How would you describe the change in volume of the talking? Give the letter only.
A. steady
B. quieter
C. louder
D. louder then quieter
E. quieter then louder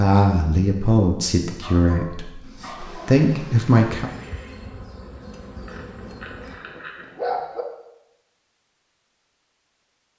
E.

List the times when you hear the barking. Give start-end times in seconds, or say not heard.
1.6-3.2, 5.7-7.7.